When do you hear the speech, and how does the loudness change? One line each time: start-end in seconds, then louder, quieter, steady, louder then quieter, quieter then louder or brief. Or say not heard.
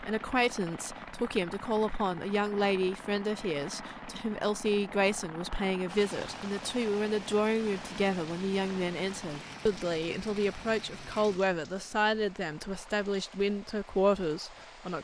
0.0-14.9 steady.